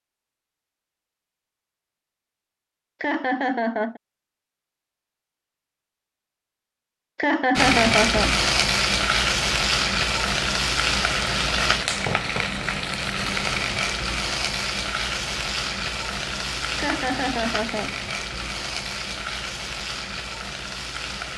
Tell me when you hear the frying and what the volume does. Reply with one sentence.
You can hear the frying from 7.5 to 21.3 s, getting quieter.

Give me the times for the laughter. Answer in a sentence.
The laughter can be heard from 3.0 to 4.0 s, from 7.2 to 8.3 s and from 16.8 to 17.9 s.